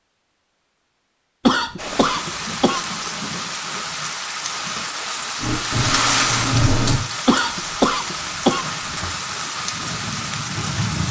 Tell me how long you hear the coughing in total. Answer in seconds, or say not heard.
3 s.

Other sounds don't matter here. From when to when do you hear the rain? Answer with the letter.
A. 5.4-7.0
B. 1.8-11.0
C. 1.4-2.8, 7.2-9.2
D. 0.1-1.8
B.